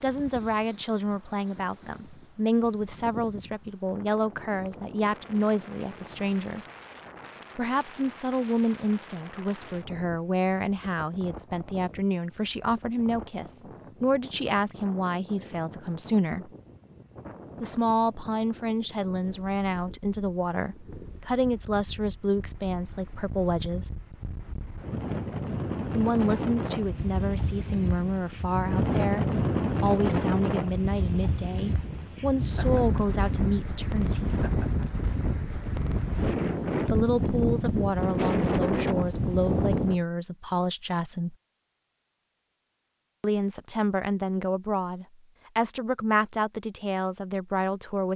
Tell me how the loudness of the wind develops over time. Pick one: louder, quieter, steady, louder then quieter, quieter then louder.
louder.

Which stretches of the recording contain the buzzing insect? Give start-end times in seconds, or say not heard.
not heard.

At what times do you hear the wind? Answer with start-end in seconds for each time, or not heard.
0.0-40.0.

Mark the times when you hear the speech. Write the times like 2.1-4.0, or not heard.
0.0-6.7, 7.5-16.5, 17.6-23.9, 25.9-34.4, 36.9-41.4, 43.2-48.1.